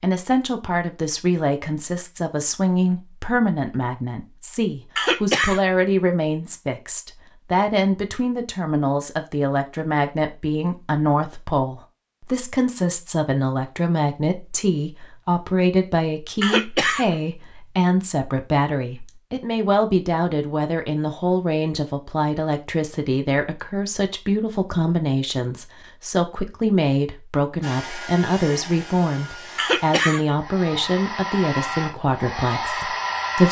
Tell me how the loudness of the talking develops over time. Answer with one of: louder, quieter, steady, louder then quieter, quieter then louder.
steady.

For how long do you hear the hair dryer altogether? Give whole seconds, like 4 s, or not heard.
6 s.